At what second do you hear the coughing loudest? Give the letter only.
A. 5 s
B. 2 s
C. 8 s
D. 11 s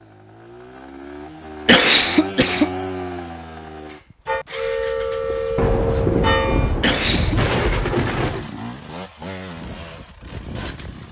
B.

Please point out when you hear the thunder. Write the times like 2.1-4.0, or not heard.
5.5-8.4.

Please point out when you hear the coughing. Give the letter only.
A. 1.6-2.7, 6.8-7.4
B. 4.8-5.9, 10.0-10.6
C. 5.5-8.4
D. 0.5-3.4
A.